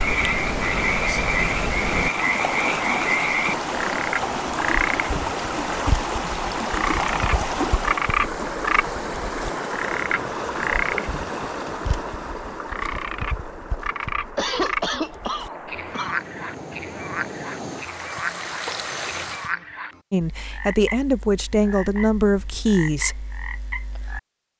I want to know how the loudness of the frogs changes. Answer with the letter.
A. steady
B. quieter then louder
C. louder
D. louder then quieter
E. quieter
E.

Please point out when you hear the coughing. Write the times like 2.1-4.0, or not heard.
14.3-16.2.